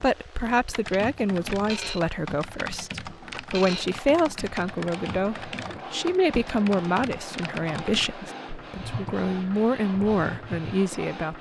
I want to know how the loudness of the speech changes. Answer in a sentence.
The loudness of the speech stays about the same.